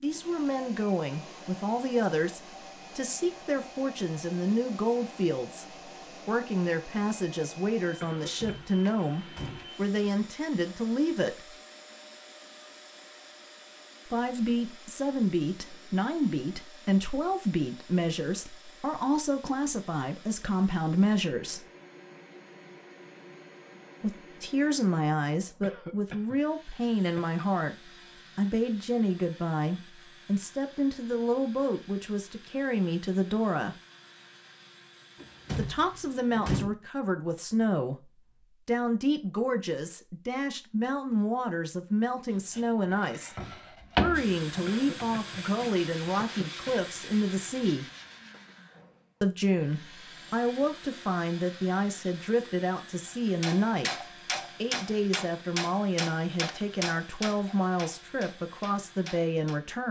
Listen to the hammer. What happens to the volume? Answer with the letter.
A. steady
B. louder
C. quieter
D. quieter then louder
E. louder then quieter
C.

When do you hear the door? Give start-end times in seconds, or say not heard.
8.3-9.7, 35.1-36.7.